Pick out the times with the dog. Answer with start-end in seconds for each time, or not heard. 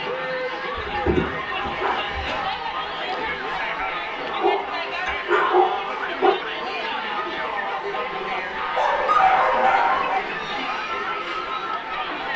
0.8-2.5, 4.2-6.3, 8.8-10.2.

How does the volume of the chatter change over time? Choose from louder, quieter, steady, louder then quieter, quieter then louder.
steady.